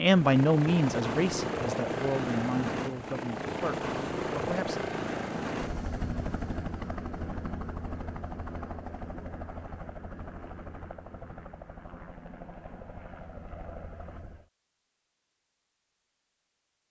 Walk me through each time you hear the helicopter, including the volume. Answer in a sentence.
You can hear the helicopter from 0.0 to 14.5 s, getting quieter.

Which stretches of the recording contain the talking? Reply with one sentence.
The talking can be heard from 0.0 to 5.0 s.